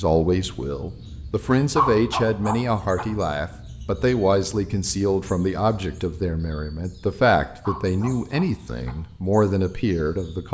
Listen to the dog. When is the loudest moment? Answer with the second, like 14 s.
2 s.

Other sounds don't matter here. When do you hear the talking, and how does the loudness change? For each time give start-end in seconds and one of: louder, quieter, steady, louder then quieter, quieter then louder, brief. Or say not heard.
0.0-10.4 steady.